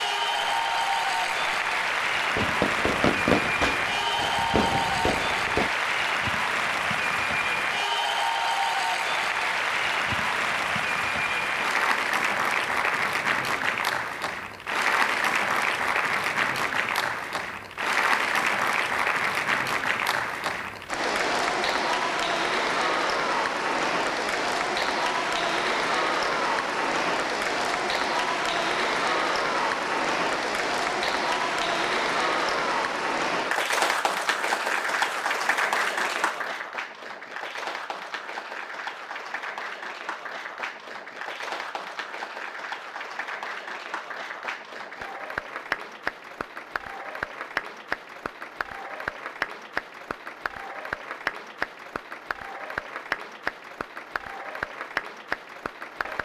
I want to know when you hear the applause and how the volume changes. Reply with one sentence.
The applause can be heard from 0.0 to 56.2 s, getting quieter.